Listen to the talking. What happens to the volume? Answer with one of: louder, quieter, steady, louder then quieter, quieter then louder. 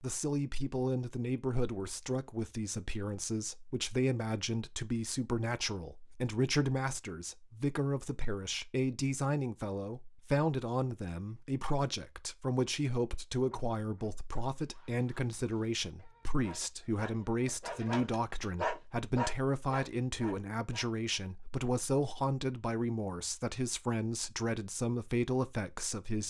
steady.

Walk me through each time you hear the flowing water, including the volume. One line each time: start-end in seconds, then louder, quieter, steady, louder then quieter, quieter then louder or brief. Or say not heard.
not heard.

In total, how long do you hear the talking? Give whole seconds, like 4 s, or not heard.
26 s.